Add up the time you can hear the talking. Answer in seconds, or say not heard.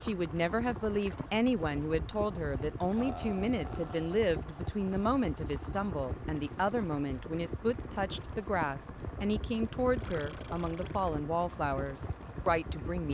13 s.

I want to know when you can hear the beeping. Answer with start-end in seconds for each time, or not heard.
not heard.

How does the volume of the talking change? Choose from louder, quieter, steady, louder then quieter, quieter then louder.
steady.